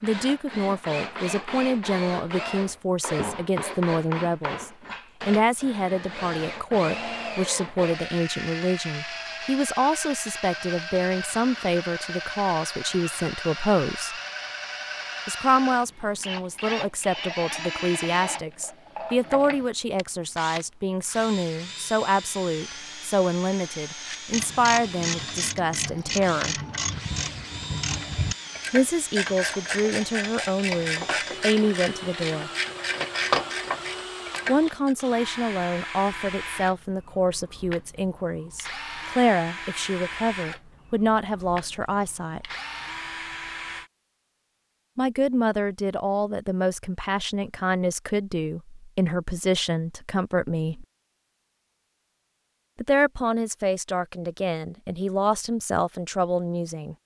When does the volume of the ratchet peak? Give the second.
33 s.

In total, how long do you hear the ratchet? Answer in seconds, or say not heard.
11 s.